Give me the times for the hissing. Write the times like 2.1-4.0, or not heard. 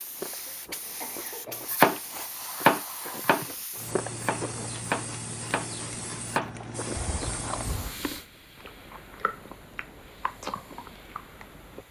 0.0-11.8.